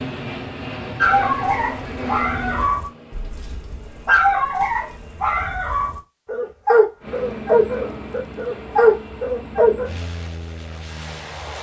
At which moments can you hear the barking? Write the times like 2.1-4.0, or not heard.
0.9-9.9.